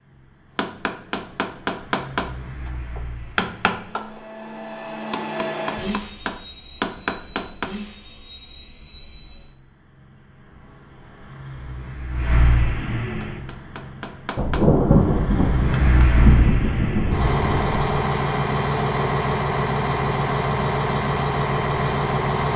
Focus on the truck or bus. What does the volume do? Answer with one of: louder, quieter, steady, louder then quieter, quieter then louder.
louder.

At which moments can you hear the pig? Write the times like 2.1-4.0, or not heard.
not heard.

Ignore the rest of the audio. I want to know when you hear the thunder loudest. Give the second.
15 s.